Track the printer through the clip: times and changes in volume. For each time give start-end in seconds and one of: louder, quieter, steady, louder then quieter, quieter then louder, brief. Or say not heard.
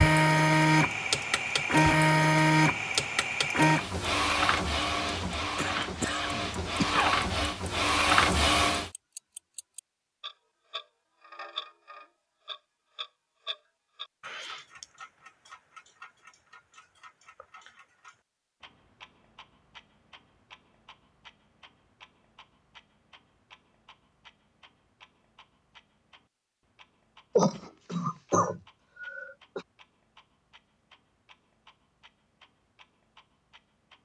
0.0-8.9 quieter then louder.